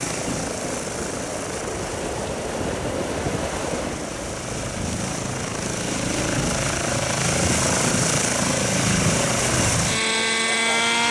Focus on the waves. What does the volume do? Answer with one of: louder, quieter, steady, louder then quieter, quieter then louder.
louder then quieter.